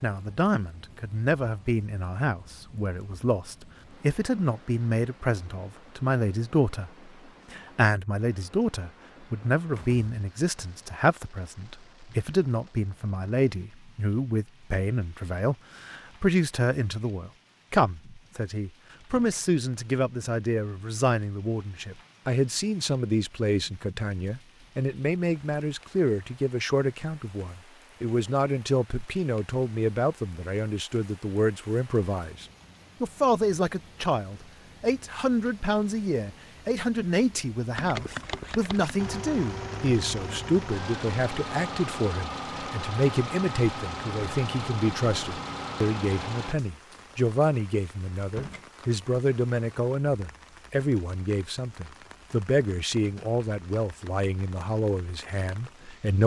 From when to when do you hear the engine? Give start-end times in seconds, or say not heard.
37.7-46.5.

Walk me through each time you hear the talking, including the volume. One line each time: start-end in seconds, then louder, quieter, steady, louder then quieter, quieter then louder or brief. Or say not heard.
0.0-56.2 steady.